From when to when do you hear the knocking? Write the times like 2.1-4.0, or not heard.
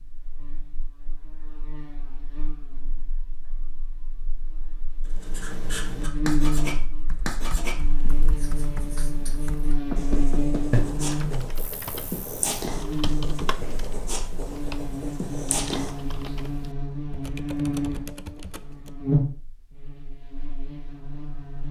9.9-10.9.